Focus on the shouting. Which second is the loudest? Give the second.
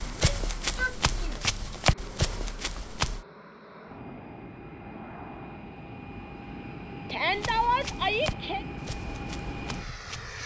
8 s.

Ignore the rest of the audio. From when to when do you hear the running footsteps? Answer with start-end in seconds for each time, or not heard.
0.0-3.2, 7.2-10.3.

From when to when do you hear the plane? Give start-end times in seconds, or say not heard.
0.0-10.4.